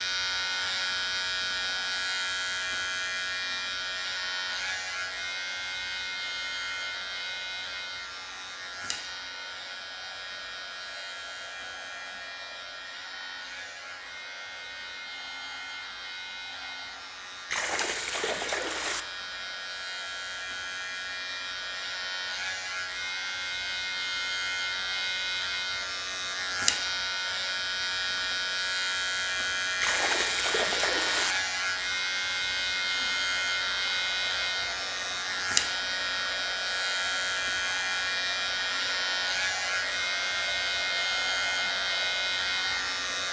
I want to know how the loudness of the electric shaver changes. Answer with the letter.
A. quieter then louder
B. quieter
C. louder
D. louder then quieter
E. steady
A.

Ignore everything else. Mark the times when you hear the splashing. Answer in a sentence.
You can hear the splashing from 17.5 to 19.1 s and from 29.8 to 31.4 s.